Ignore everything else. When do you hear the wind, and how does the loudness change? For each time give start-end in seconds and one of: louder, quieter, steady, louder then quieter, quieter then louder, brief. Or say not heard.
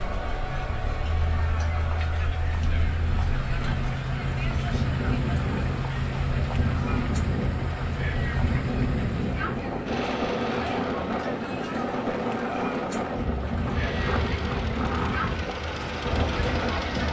0.0-17.0 louder.